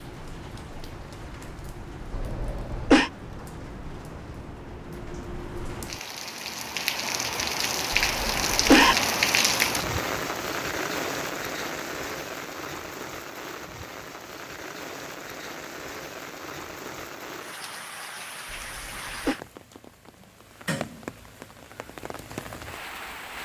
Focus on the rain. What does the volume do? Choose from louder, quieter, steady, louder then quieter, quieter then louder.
louder then quieter.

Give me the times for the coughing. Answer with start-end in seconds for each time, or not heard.
2.1-3.1, 7.9-8.9, 18.5-19.4.